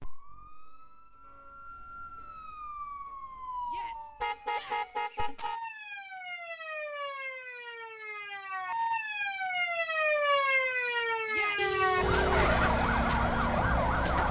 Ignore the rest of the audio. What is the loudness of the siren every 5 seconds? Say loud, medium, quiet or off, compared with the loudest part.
quiet, medium, loud.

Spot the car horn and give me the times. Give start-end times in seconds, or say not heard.
4.2-5.6, 11.6-12.6.